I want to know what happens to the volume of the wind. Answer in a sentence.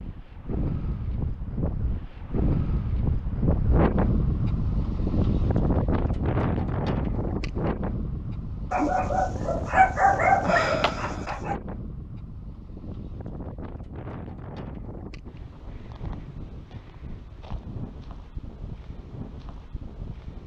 The volume of the wind goes down.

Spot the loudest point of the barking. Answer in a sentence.
The loudest moment of the barking is at 10 seconds.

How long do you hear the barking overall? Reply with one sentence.
The barking can be heard for 3 seconds in total.